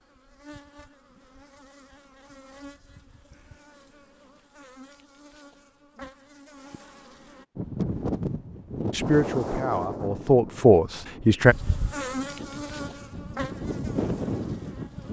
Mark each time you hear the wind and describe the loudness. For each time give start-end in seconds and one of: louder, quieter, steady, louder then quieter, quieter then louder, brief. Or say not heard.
7.5-15.0 quieter then louder.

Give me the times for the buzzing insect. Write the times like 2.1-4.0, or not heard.
0.0-7.5, 11.4-15.0.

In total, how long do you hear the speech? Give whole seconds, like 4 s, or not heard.
3 s.